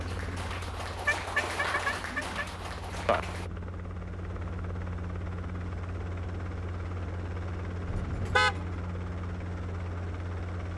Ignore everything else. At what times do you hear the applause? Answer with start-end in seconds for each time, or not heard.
0.0-3.5.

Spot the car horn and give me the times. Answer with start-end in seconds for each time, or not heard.
1.1-2.4, 7.8-8.7.